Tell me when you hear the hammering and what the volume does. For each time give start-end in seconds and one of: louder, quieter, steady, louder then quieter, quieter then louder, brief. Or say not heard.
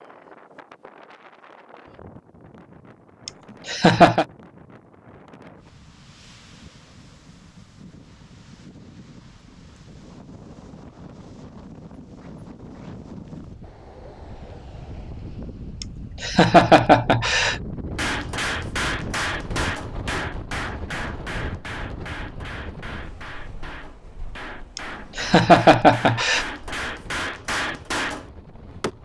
17.9-28.9 quieter then louder.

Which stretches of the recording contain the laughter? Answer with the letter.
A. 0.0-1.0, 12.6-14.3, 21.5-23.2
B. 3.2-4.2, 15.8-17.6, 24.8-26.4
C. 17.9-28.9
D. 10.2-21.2
B.